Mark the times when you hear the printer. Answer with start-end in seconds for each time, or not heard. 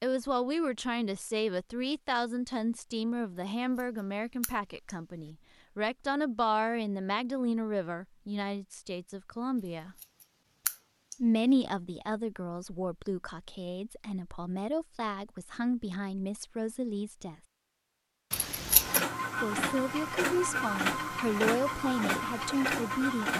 18.5-23.3.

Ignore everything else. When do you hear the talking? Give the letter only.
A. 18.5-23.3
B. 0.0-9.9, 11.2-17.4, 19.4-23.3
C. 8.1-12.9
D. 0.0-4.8
B.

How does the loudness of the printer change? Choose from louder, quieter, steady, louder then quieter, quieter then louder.
steady.